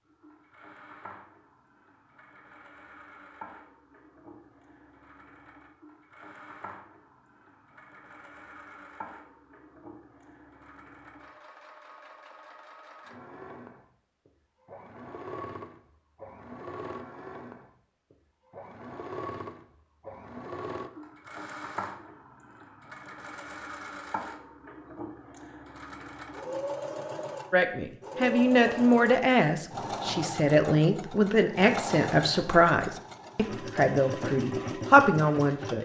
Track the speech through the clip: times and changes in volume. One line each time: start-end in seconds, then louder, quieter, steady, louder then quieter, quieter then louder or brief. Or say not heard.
27.5-35.7 steady.